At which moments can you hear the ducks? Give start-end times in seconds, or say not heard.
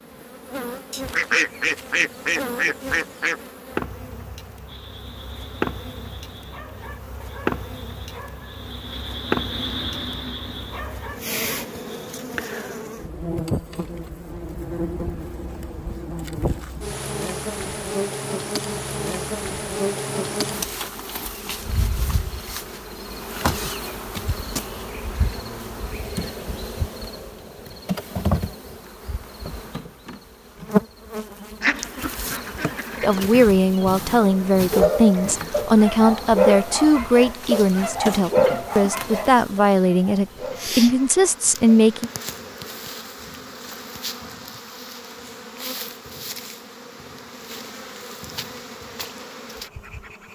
0.9-3.4, 31.6-33.5.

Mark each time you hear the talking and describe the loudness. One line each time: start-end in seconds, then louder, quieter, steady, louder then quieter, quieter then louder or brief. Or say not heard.
33.0-42.1 steady.